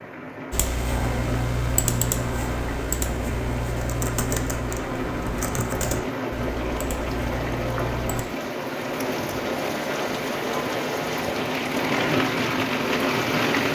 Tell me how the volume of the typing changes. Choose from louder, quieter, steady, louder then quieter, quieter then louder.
quieter.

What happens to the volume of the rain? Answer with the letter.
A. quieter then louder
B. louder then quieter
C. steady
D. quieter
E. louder
E.